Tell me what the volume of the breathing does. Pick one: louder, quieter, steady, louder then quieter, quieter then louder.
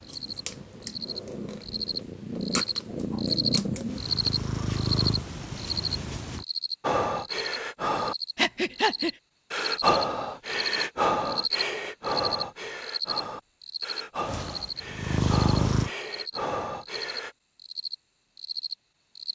quieter.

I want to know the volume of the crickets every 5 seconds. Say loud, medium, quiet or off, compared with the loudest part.
loud, loud, loud, medium.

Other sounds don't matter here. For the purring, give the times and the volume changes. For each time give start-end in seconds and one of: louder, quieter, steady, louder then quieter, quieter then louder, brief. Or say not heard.
0.0-6.5 louder
14.2-15.9 brief.